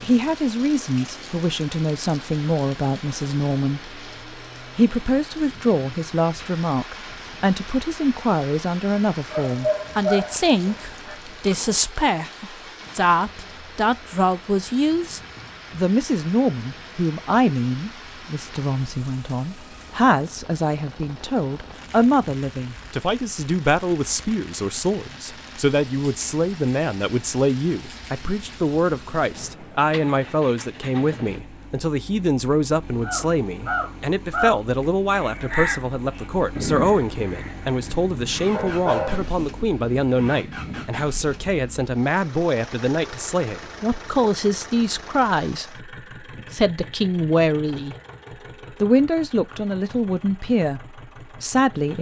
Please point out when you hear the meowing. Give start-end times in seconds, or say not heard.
not heard.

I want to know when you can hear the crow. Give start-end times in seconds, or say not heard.
33.0-41.6.